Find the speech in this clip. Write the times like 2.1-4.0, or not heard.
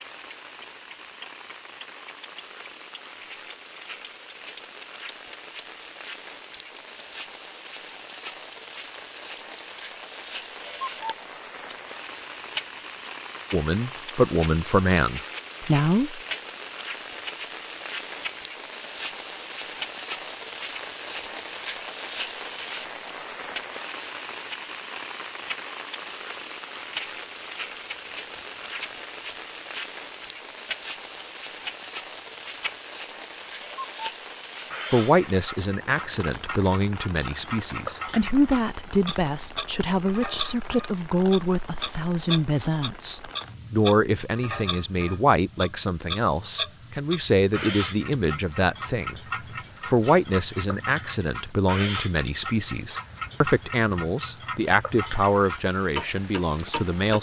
13.5-16.2, 34.9-49.2, 49.9-57.1.